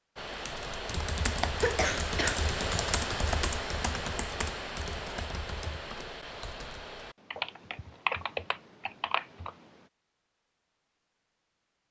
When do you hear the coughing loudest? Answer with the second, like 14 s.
2 s.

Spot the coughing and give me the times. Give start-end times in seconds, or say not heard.
1.6-2.5, 7.3-8.4.